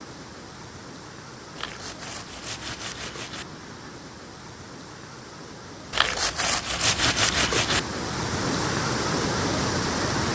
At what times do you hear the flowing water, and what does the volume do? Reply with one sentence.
You can hear the flowing water from 0.0 to 10.3 s, getting louder.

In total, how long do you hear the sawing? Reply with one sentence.
The sawing can be heard for 4 seconds in total.